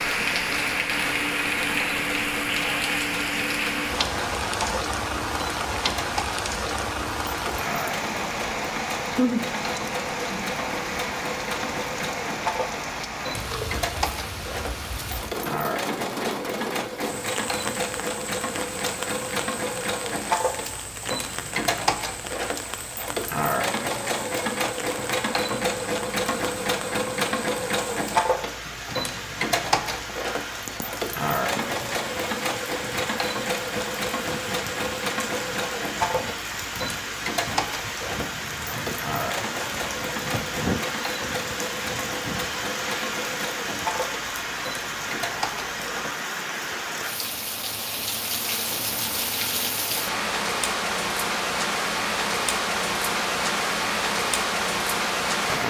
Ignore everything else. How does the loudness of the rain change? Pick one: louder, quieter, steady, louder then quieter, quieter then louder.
quieter then louder.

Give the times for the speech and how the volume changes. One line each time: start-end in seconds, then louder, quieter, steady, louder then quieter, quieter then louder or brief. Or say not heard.
not heard.